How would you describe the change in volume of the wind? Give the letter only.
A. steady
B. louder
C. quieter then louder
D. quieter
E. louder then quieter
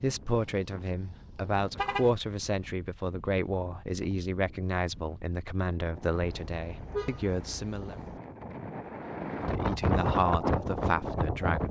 B.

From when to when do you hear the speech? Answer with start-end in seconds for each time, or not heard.
0.0-8.0, 9.4-11.6.